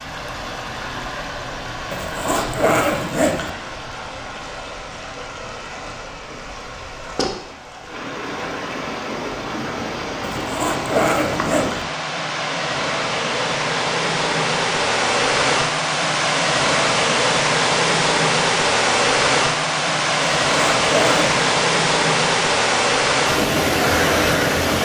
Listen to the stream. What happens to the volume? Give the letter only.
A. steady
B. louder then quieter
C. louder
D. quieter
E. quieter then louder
C.